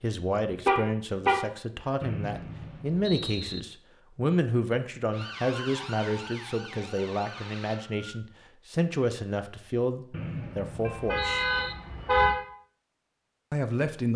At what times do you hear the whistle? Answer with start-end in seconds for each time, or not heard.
2.0-3.6, 10.1-11.8.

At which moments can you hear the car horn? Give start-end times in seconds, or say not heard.
0.7-1.4, 10.8-12.3.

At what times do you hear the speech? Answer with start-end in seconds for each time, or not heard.
0.0-11.4, 13.5-14.1.